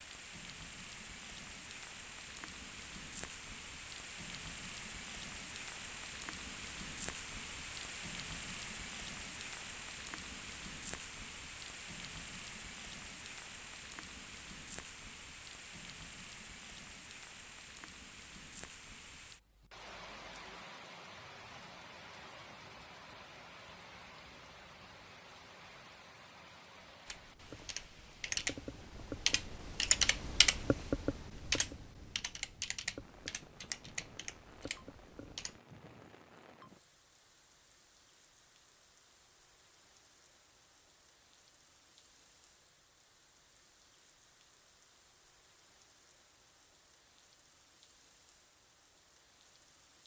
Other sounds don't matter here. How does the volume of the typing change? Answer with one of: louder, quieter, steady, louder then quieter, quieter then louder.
louder then quieter.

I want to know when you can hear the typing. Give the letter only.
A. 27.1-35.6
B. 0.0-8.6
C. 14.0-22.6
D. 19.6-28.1
A.